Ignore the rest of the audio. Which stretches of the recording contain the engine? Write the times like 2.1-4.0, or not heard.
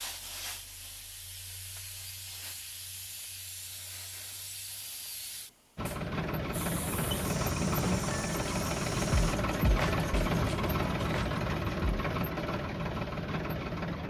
5.8-14.0.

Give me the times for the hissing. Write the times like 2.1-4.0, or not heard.
0.0-9.3.